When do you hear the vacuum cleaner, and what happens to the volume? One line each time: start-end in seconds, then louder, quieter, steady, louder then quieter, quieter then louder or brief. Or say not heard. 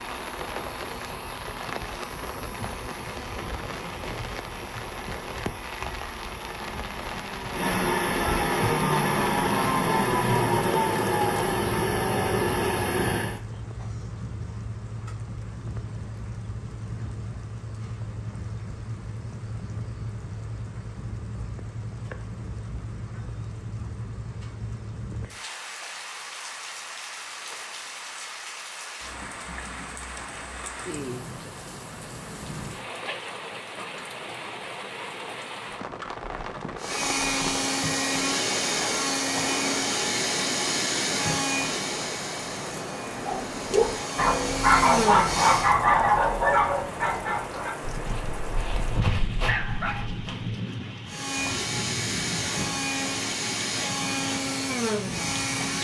0.0-13.4 louder
36.8-45.8 quieter then louder
51.0-55.7 steady.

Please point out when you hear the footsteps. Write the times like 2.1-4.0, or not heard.
not heard.